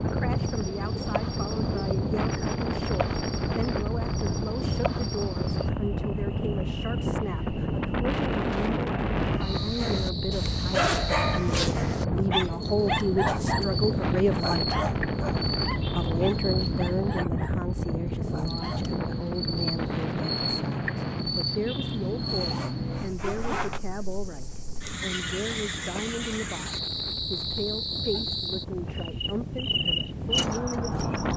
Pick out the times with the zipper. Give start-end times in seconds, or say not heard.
10.8-11.8, 22.1-23.8.